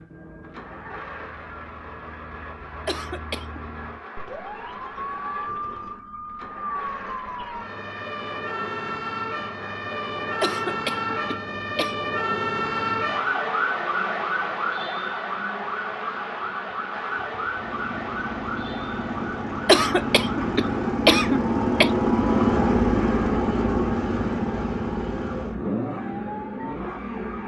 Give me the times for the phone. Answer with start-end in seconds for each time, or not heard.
not heard.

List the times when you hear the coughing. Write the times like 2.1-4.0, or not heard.
2.9-3.6, 10.4-11.9, 19.6-21.9.